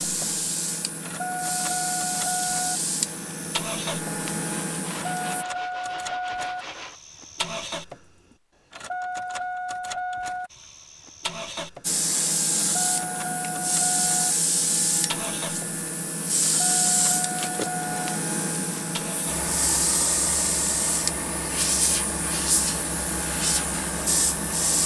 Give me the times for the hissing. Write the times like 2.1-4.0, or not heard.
0.0-5.5, 11.8-24.8.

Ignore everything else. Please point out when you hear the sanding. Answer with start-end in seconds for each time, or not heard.
4.4-7.0.